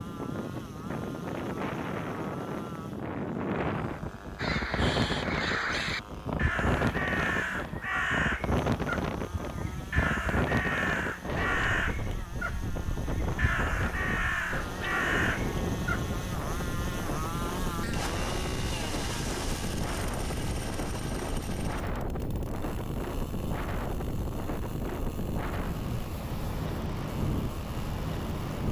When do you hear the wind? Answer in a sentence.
You can hear the wind from 0.0 to 28.6 s.